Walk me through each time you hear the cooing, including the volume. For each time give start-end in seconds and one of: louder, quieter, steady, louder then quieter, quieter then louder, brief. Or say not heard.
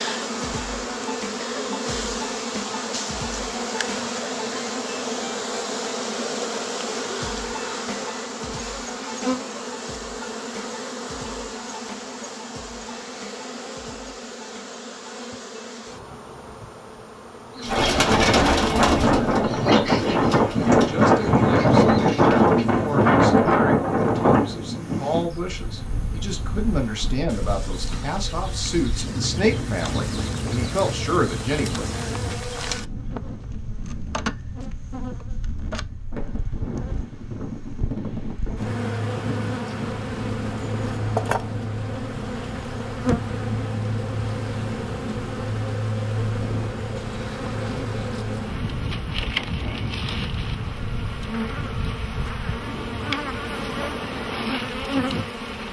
17.6-23.1 quieter then louder.